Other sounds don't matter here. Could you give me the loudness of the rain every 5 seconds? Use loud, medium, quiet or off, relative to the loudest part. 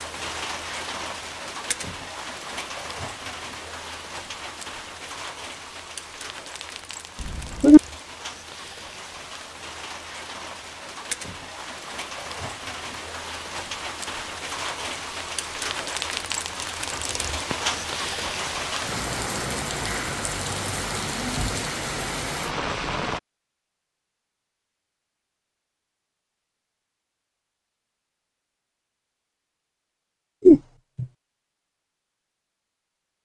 medium, medium, medium, loud, loud, off, off.